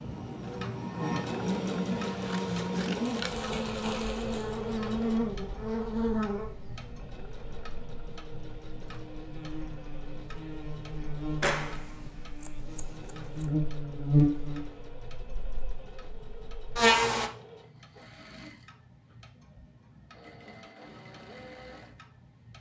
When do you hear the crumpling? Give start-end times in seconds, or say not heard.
3.0-4.6.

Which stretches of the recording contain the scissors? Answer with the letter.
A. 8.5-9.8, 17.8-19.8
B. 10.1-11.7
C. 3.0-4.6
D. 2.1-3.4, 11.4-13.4
D.